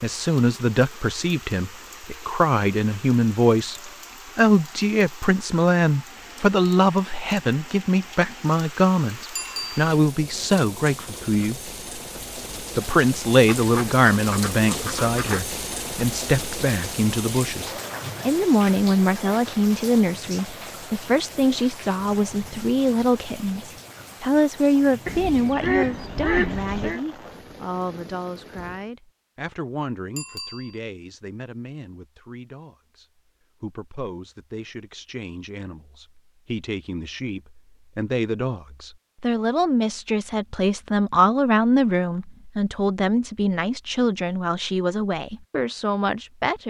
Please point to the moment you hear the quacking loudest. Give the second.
26 s.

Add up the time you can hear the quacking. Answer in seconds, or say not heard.
4 s.